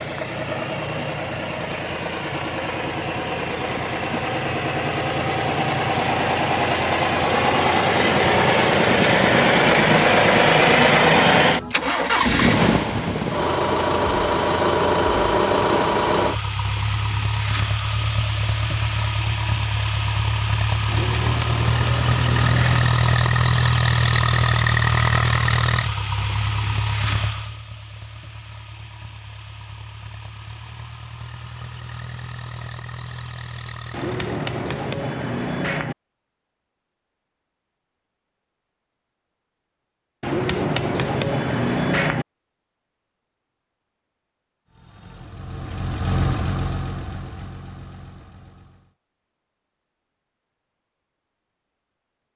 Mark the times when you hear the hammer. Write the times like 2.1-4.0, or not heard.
8.2-9.8, 20.9-22.9, 33.9-36.0, 40.2-42.2.